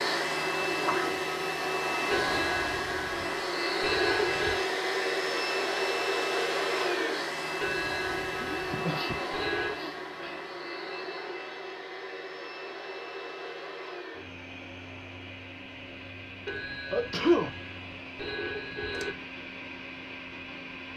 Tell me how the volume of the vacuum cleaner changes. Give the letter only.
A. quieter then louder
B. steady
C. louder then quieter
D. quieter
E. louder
D.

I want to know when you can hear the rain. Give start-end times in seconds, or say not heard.
not heard.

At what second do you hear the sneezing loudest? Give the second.
17 s.